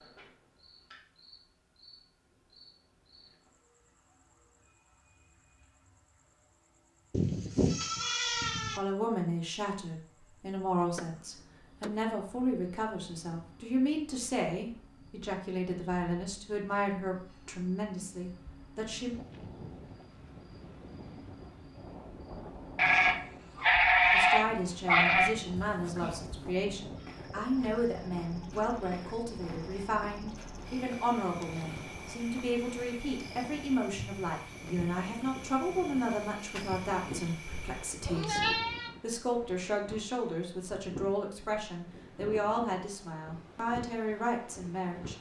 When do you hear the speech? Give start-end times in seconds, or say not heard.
8.8-19.1, 24.1-45.1.